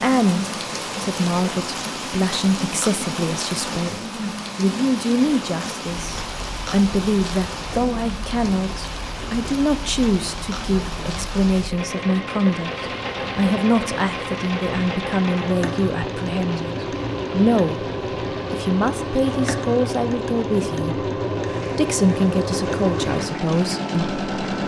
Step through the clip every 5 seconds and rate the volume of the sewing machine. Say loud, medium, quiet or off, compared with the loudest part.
medium, quiet, medium, loud, loud.